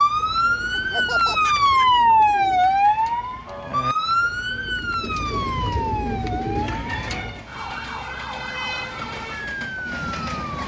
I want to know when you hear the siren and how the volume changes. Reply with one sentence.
The siren can be heard from 0.0 to 10.6 s, getting quieter.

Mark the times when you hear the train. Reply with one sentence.
You can hear the train from 5.0 to 10.6 s.